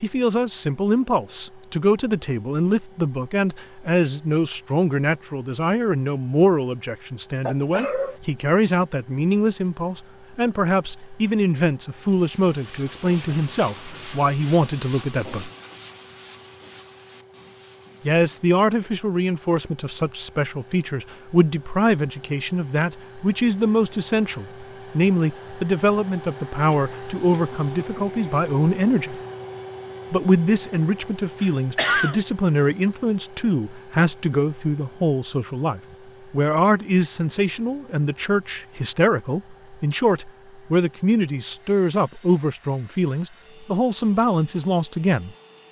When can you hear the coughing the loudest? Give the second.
32 s.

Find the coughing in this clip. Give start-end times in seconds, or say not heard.
7.5-8.2, 26.6-28.1, 31.4-32.2.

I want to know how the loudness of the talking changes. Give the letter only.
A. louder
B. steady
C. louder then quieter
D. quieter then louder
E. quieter
B.